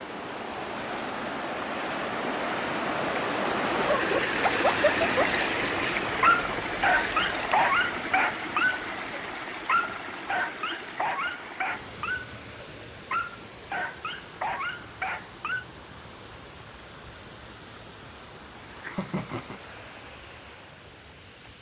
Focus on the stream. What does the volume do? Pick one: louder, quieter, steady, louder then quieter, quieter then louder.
quieter.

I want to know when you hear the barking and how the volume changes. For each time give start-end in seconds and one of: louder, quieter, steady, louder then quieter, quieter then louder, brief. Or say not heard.
3.9-15.7 quieter.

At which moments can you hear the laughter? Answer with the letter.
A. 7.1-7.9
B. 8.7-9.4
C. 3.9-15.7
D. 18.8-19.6
D.